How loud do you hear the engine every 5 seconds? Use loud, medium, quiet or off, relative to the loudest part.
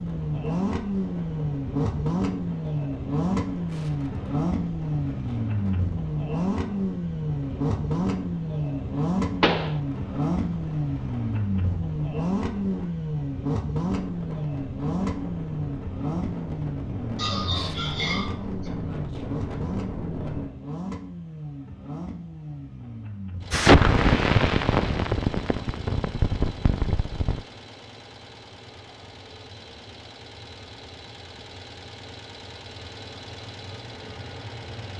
loud, loud, loud, medium, medium, quiet, quiet.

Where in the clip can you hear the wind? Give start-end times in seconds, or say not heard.
0.0-20.5.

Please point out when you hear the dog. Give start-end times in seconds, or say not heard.
17.1-18.7.